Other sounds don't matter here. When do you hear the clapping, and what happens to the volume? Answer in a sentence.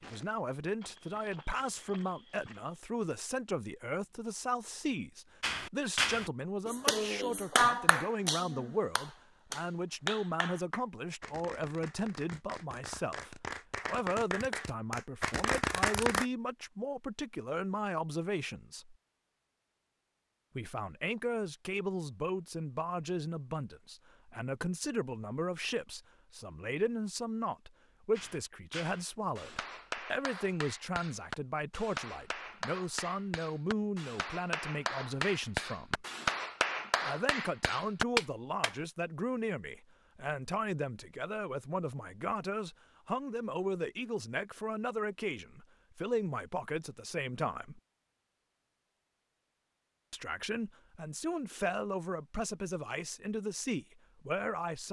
The clapping can be heard from 5.4 to 16.2 s, getting quieter then louder; and from 28.1 to 38.8 s, getting louder.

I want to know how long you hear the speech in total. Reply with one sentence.
You can hear the speech for 50 seconds altogether.